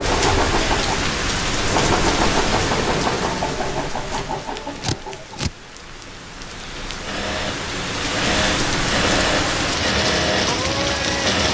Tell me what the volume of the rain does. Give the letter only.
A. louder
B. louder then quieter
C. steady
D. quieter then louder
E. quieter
D.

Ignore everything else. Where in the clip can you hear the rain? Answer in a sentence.
You can hear the rain from 0.0 to 11.4 s.